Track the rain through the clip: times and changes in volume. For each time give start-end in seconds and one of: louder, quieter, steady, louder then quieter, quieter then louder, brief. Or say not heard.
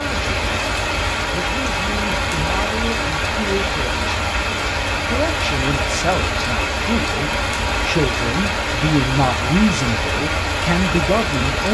0.0-11.6 steady.